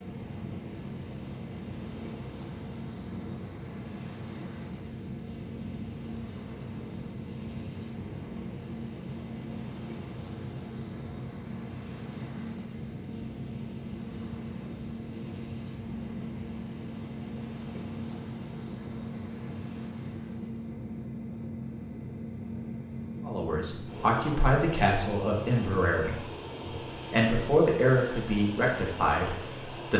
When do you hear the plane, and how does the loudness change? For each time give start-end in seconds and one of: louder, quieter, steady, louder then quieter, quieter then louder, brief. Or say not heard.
0.0-29.9 steady.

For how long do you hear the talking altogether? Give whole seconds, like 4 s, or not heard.
7 s.